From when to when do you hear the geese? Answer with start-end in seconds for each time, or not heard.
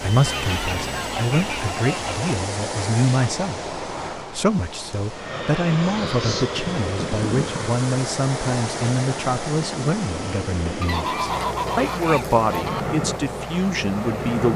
0.2-2.4, 5.8-7.7, 10.8-12.8.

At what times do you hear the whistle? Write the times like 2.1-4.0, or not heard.
not heard.